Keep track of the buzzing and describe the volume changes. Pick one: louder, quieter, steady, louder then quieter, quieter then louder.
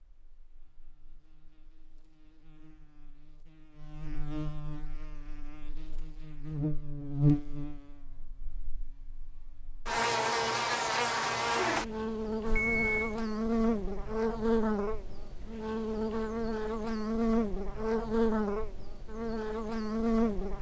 louder.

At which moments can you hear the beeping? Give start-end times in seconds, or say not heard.
12.4-13.2.